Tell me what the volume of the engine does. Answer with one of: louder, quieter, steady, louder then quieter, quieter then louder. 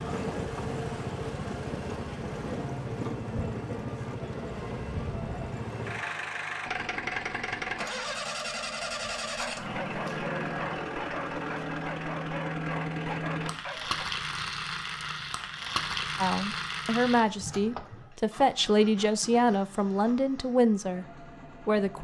quieter.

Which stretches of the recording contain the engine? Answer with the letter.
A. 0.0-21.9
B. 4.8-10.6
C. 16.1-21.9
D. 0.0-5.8
A.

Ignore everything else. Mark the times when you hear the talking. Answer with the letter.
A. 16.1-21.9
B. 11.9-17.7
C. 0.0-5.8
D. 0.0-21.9
A.